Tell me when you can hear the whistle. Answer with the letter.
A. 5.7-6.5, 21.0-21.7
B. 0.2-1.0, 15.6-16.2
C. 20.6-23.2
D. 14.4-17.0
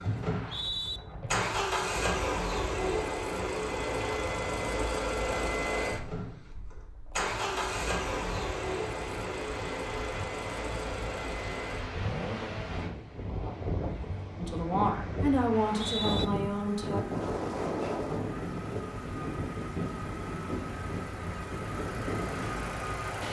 B.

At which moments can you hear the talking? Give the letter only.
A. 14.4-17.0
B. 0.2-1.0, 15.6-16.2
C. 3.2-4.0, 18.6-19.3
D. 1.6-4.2
A.